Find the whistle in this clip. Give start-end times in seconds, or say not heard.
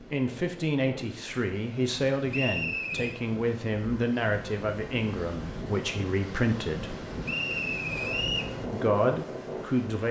2.3-3.2, 7.2-8.6.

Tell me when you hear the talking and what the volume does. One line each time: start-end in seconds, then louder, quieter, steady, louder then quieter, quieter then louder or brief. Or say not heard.
0.1-7.0 steady
8.7-10.0 brief.